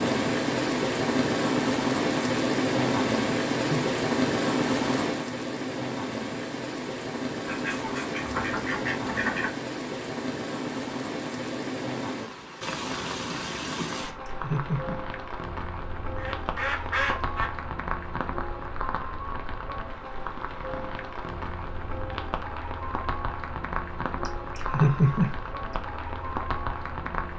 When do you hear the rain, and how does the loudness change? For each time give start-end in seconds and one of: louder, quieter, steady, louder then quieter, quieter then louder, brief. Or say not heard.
0.0-27.3 quieter.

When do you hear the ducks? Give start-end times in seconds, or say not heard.
7.5-9.6, 16.1-17.6.